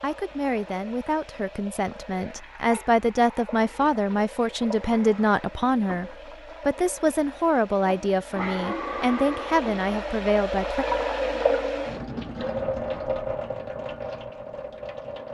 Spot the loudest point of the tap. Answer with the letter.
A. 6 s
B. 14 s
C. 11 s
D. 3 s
C.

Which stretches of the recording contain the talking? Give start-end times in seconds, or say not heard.
0.0-10.8.